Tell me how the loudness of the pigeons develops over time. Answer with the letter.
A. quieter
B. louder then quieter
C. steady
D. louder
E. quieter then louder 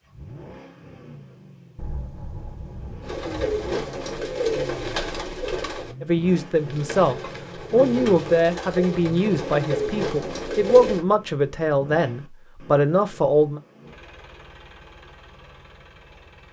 E.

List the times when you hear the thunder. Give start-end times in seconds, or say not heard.
1.8-3.6.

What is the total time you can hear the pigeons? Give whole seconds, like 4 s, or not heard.
8 s.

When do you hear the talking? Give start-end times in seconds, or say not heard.
6.0-13.6.